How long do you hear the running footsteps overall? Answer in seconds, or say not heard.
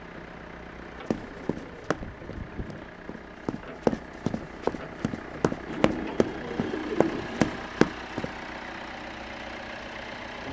7 s.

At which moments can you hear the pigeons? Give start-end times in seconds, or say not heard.
1.1-3.0, 5.7-7.7.